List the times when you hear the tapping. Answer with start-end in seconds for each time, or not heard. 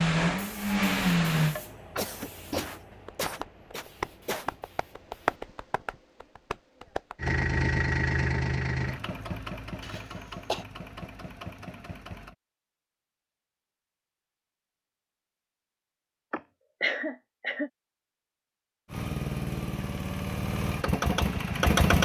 1.6-7.5.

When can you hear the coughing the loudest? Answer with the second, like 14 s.
17 s.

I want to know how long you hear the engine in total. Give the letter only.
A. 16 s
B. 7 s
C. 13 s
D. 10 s
D.